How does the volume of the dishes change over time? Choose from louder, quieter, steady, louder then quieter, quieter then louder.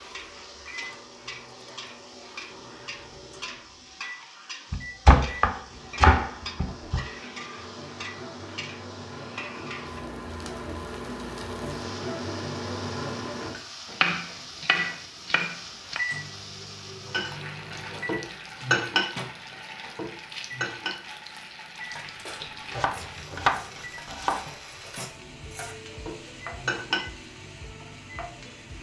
quieter then louder.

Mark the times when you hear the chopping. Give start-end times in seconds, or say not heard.
4.7-7.0, 14.0-16.0, 22.4-24.6.